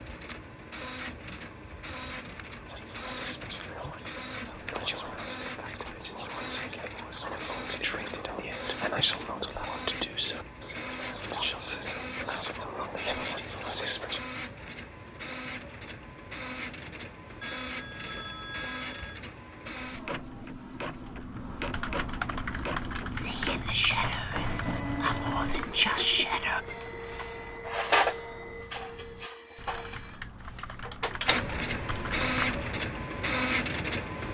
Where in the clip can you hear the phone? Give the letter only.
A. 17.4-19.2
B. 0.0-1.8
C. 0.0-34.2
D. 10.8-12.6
A.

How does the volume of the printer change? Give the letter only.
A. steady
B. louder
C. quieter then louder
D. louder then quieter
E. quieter
B.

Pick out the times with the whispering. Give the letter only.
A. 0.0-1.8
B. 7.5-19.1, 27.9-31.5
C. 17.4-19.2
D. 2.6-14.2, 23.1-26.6
D.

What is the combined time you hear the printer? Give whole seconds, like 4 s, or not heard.
34 s.